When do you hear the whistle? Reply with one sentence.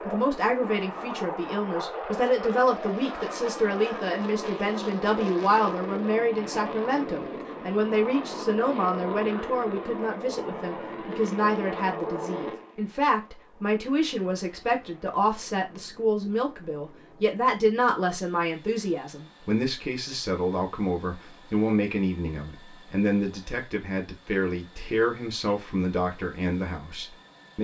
You can't hear the whistle here.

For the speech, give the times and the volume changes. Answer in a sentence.
You can hear the speech from 0.1 to 27.5 s, at a steady volume.